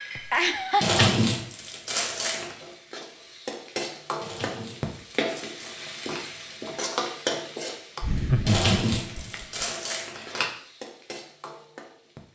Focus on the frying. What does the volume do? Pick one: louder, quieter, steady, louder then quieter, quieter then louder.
louder then quieter.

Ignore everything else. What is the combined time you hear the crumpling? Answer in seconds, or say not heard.
6 s.